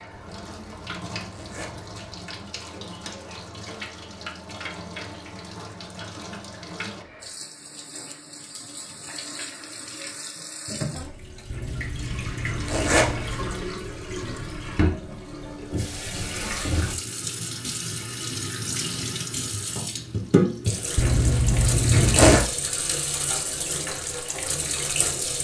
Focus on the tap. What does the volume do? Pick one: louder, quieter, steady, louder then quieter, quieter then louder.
louder.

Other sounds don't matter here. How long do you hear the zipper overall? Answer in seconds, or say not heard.
5 s.